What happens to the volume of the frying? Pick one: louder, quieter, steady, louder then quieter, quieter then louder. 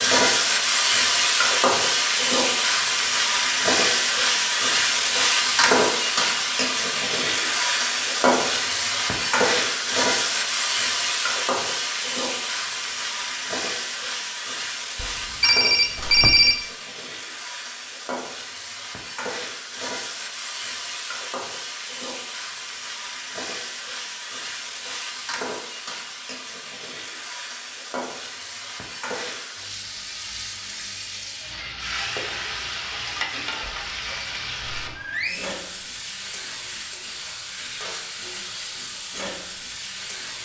quieter.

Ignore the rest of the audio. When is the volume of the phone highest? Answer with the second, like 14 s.
16 s.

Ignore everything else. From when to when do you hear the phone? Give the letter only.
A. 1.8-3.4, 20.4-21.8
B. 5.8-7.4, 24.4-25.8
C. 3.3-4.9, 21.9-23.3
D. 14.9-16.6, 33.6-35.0
D.